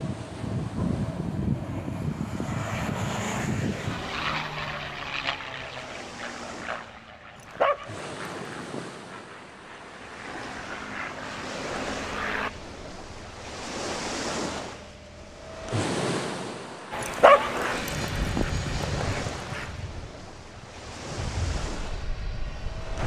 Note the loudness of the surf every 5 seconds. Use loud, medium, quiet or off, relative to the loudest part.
medium, medium, loud, loud, medium.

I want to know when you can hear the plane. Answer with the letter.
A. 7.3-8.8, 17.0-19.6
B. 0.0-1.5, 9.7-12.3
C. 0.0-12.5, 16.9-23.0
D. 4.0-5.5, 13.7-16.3
C.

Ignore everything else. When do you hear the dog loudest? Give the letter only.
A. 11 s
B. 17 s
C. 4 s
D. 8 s
B.